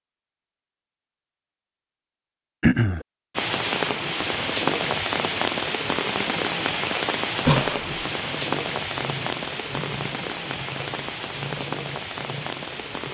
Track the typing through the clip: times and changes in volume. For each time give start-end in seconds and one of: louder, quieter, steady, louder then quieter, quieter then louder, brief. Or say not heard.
not heard.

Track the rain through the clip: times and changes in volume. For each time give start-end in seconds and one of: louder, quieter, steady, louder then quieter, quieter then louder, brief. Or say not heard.
3.4-13.0 quieter.